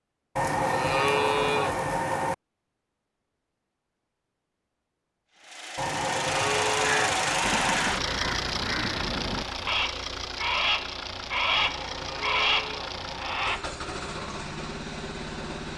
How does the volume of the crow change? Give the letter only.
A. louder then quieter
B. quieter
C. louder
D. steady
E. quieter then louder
C.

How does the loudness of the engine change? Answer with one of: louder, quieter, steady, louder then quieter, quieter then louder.
quieter.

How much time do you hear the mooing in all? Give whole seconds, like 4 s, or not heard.
6 s.